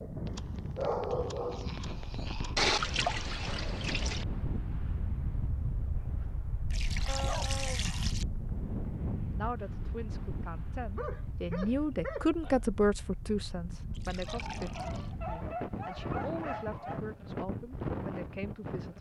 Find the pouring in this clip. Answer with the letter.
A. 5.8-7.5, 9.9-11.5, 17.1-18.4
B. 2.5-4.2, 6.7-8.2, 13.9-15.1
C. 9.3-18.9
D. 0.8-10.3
B.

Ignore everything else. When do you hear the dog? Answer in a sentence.
The dog can be heard from 0.2 to 2.5 s, from 7.0 to 8.0 s, from 10.9 to 12.6 s and from 14.2 to 17.0 s.